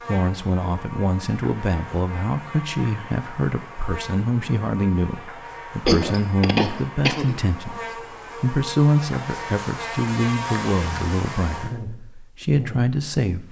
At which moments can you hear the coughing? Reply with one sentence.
You can hear the coughing from 5.8 to 7.4 s.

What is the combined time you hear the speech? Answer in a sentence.
The speech can be heard for 13 seconds in total.